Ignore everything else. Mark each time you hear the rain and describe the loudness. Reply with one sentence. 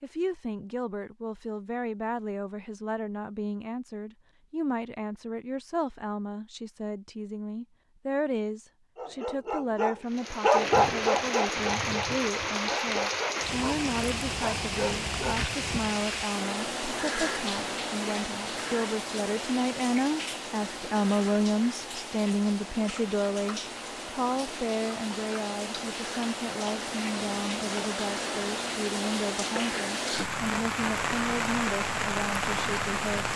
The rain can be heard from 10.1 to 33.3 s, getting quieter then louder.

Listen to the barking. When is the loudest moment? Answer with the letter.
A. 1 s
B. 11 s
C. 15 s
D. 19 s
B.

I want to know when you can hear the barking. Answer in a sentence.
The barking can be heard from 8.9 to 15.4 s.